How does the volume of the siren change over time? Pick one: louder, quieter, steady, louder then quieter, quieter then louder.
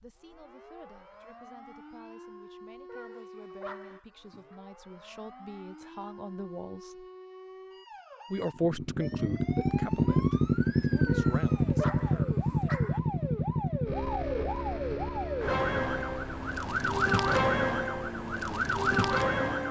louder.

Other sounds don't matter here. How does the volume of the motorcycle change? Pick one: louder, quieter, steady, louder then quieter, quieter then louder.
quieter.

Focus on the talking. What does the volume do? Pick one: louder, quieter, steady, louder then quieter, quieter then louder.
louder then quieter.